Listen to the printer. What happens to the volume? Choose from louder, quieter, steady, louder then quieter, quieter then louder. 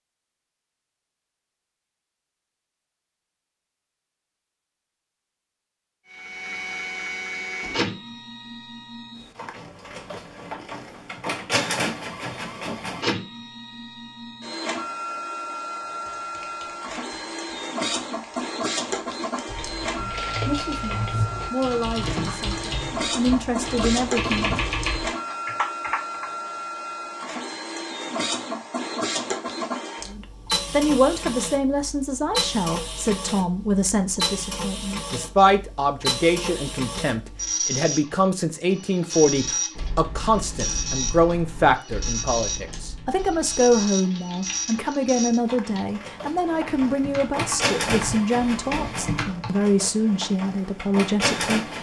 steady.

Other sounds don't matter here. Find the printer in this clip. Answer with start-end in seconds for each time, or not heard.
6.1-51.7.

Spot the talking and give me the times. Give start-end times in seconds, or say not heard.
19.9-24.6, 30.1-51.7.